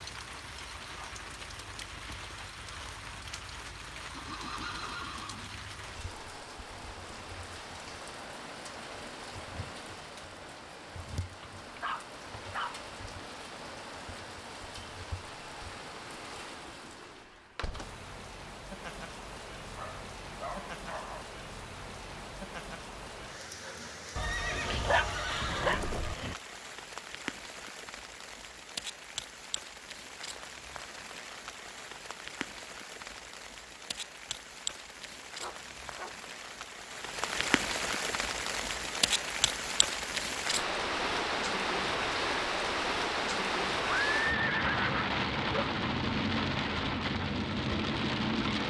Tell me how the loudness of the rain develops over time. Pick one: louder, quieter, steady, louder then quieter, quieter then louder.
louder.